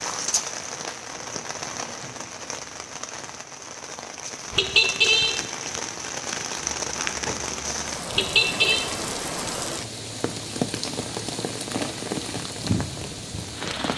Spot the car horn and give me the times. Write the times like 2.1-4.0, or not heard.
4.5-5.3, 8.1-8.8.